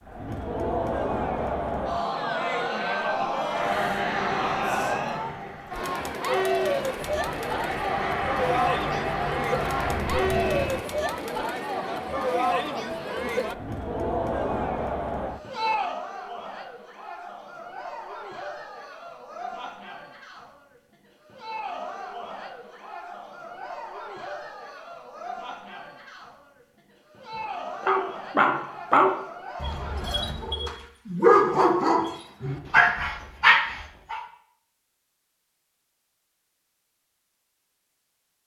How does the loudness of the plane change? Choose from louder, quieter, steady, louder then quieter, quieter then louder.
quieter then louder.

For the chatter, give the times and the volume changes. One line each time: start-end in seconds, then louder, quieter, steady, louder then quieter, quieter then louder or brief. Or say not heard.
0.1-30.4 quieter.